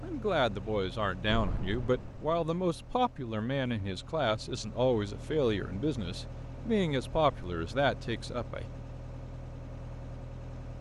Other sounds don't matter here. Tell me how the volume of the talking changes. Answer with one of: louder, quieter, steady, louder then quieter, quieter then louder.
steady.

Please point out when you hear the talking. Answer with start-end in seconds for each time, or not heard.
0.0-8.7.